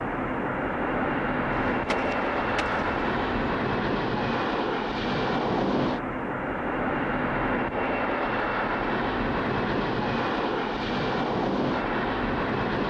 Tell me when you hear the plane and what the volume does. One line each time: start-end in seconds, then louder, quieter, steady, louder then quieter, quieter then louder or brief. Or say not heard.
0.0-12.8 steady.